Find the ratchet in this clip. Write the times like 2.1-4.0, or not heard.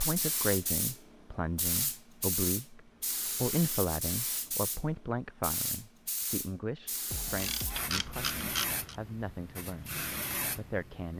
7.1-8.9.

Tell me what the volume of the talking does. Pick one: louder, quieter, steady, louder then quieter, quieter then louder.
quieter.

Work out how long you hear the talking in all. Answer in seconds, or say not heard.
11 s.